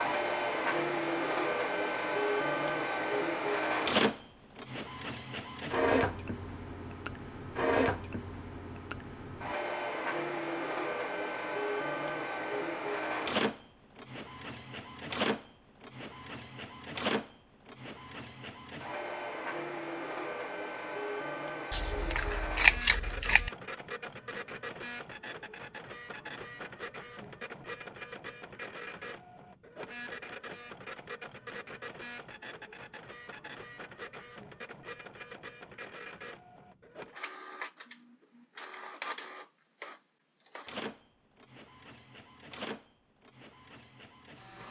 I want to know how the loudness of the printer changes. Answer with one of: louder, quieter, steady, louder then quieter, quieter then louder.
quieter.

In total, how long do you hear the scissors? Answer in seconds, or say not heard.
2 s.